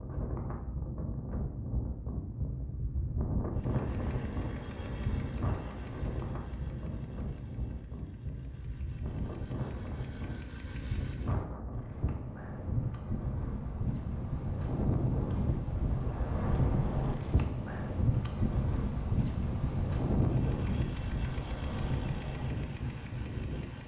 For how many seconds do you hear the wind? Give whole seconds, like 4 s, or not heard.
24 s.